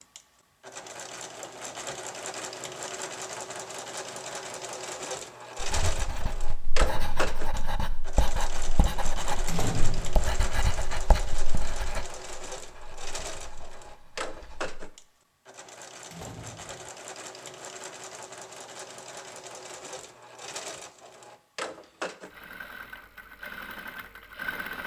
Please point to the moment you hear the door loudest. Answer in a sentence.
The loudest moment of the door is at 10 seconds.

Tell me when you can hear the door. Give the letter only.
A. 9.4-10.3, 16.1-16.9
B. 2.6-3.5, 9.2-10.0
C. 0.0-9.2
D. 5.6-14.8
A.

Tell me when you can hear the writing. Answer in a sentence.
You can hear the writing from 5.6 to 14.8 s.